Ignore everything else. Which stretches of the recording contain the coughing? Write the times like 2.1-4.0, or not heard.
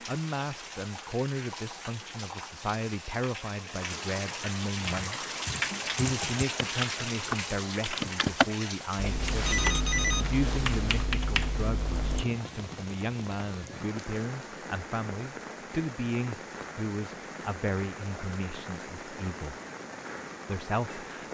not heard.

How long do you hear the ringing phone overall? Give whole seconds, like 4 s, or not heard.
2 s.